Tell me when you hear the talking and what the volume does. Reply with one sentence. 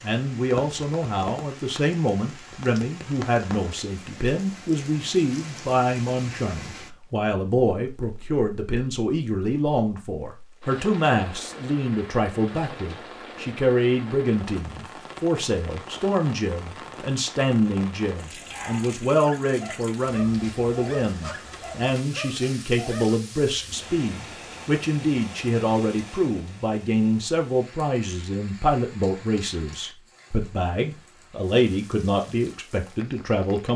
The talking can be heard from 0.0 to 33.7 s, at a steady volume.